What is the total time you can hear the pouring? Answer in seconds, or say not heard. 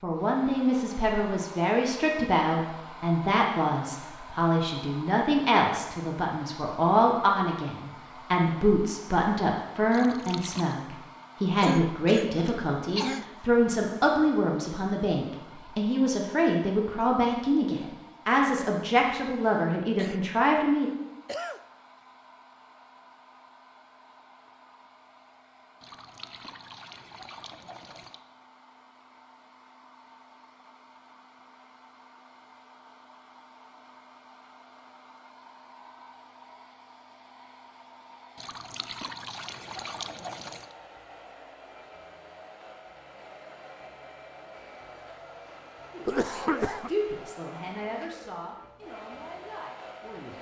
6 s.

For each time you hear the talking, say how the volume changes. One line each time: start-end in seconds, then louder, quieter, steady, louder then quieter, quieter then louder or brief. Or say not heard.
0.0-20.9 steady
45.9-50.3 quieter.